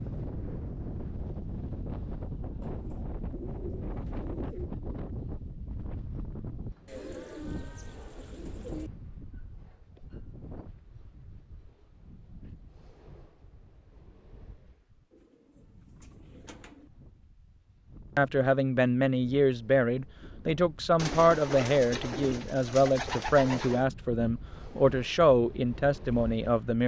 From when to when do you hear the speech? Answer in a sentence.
You can hear the speech from 18.1 to 26.8 s.